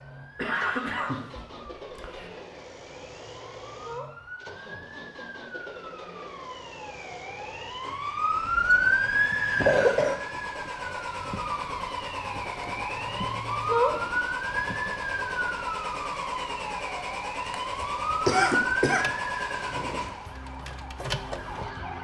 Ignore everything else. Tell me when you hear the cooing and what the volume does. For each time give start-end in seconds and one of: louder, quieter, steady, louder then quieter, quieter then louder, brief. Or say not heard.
not heard.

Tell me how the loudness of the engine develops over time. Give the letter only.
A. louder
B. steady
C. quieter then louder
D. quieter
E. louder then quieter
A.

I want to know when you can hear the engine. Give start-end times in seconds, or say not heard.
0.0-21.9.